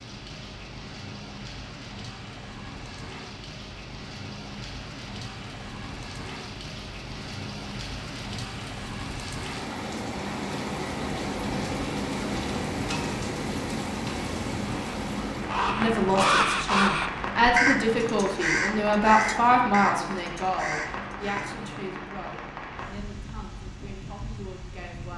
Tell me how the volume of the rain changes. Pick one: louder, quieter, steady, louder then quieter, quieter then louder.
louder then quieter.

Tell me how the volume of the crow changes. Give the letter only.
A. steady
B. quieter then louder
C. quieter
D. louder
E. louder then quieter
C.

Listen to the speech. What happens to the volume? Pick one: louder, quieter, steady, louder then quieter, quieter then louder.
quieter.